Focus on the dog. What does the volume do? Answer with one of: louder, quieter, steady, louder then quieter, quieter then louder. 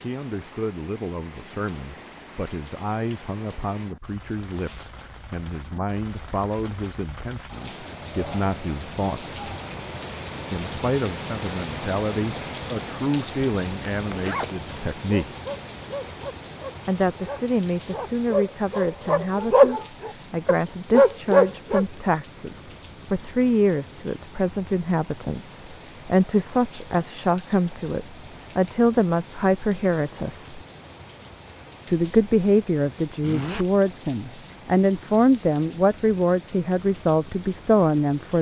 louder.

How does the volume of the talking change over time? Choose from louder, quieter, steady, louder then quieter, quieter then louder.
louder.